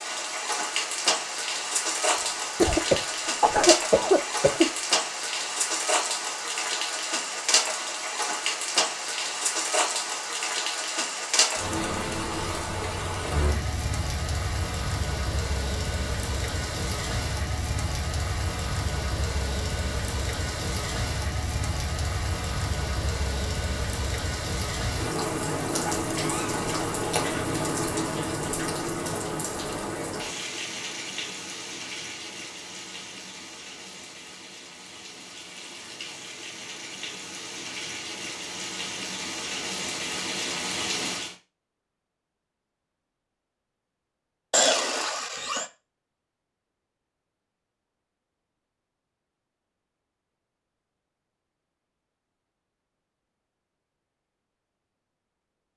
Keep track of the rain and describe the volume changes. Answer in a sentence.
The volume of the rain goes down.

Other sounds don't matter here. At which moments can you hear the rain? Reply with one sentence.
The rain can be heard from 0.0 to 41.4 s.